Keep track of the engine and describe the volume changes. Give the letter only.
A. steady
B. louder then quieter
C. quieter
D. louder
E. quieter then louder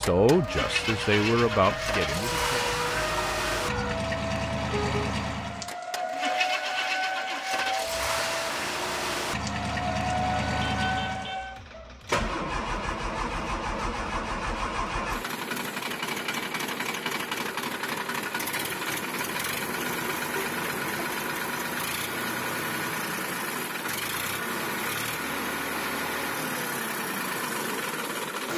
A.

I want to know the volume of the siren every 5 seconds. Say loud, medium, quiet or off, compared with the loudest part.
loud, loud, loud, off, off, off.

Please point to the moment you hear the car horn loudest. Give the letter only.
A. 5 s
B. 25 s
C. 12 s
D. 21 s
A.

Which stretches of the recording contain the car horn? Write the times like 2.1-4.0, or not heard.
4.5-5.2, 10.8-11.9, 19.5-21.1.